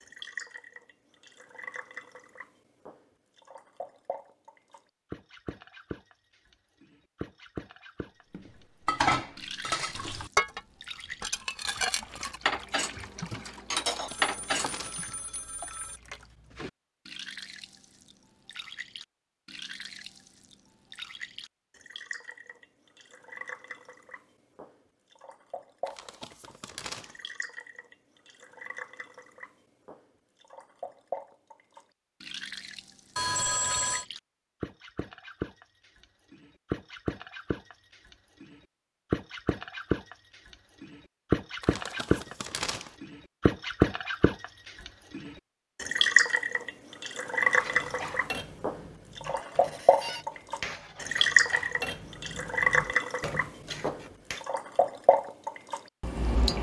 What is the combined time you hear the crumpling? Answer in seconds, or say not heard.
4 s.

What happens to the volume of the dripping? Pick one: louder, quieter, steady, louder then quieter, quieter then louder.
louder.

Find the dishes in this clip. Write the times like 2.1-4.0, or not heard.
8.3-15.1, 47.5-54.5.